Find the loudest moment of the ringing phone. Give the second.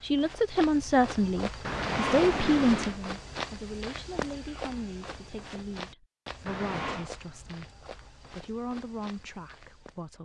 2 s.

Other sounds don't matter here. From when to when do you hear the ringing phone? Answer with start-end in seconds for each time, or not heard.
1.6-3.0, 6.5-7.1.